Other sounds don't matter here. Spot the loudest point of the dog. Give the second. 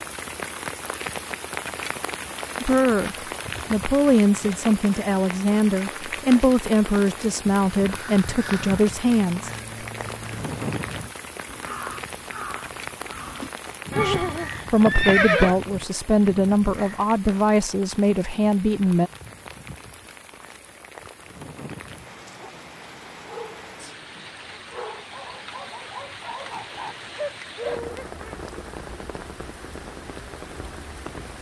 28 s.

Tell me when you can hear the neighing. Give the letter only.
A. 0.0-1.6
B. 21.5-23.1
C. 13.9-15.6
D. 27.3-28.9
C.